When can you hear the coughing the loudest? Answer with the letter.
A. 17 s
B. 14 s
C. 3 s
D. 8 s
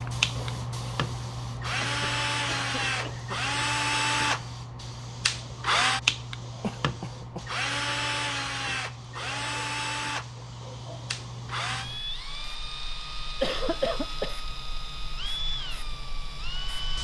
B.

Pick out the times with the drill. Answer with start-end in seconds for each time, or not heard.
0.0-16.9.